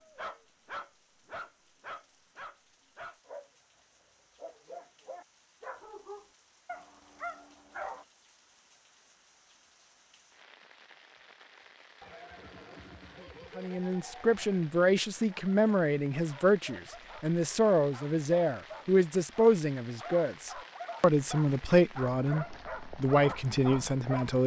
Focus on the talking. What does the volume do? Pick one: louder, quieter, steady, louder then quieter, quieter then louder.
steady.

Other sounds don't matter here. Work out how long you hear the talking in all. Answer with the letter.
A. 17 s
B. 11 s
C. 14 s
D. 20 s
B.